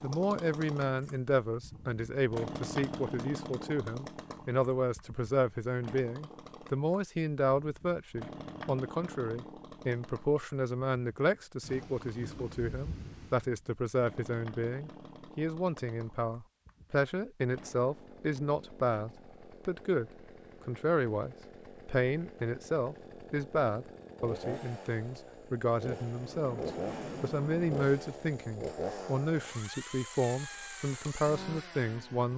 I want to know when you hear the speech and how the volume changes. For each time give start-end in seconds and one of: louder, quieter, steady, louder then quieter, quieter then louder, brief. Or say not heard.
0.0-32.3 steady.